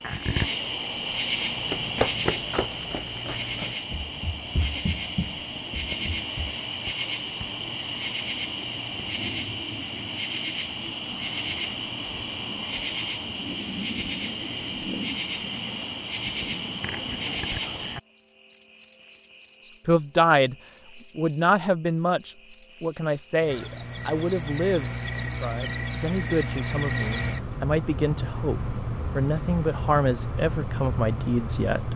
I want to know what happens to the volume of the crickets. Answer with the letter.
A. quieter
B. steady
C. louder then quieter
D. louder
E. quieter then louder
B.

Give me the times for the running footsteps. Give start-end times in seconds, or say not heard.
1.2-6.6.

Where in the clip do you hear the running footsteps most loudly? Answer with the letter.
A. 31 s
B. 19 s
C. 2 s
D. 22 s
C.